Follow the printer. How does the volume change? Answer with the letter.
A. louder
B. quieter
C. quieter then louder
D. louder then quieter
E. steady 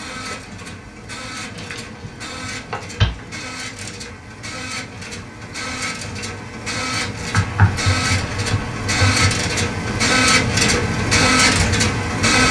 A.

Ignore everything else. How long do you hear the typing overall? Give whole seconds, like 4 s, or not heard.
4 s.